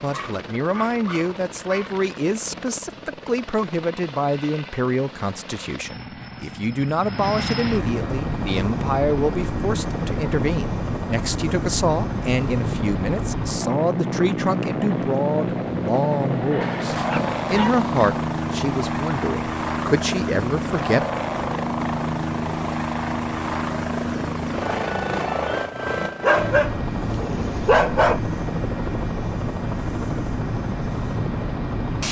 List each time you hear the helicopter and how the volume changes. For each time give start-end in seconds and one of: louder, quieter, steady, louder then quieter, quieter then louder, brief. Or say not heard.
0.0-32.0 louder.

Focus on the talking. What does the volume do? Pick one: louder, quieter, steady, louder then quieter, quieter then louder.
steady.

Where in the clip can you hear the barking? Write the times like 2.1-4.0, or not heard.
0.1-2.0, 16.6-17.9, 26.2-28.2.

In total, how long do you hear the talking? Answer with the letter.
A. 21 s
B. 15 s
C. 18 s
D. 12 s
A.